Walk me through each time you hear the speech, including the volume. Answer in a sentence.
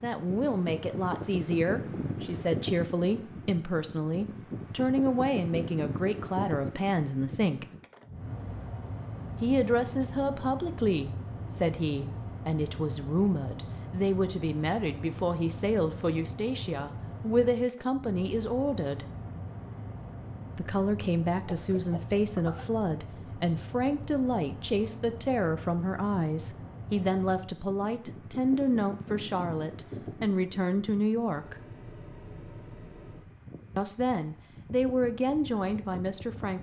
You can hear the speech from 0.0 to 7.7 s, at a steady volume; from 9.4 to 19.1 s, at a steady volume; from 20.6 to 31.6 s, at a steady volume; and briefly from 33.8 to 36.5 s.